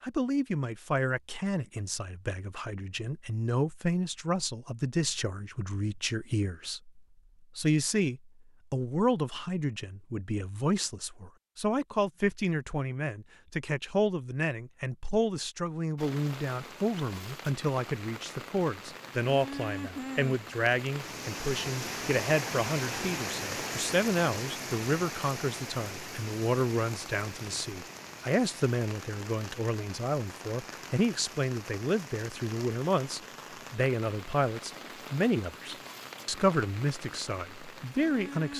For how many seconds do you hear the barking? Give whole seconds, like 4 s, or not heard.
not heard.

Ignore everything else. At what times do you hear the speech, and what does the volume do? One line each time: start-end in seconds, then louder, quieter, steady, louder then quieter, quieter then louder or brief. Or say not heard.
0.0-38.5 steady.